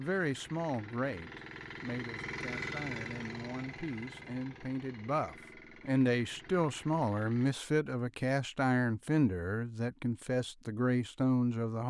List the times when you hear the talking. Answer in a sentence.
The talking can be heard from 0.0 to 11.8 s.